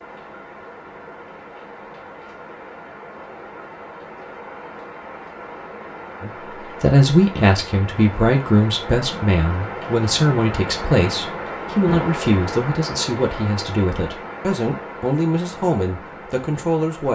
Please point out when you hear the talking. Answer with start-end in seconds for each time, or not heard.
6.2-17.1.